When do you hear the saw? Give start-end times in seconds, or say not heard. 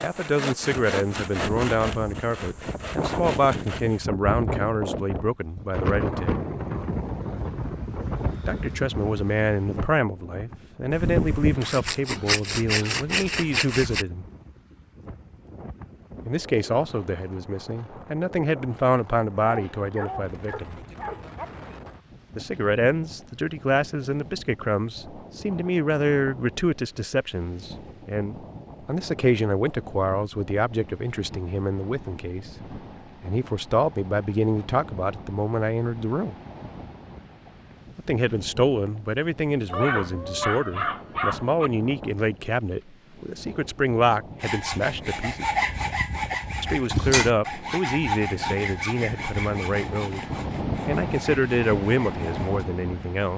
0.0-4.1, 10.9-14.1, 44.4-52.6.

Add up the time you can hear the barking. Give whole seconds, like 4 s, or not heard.
4 s.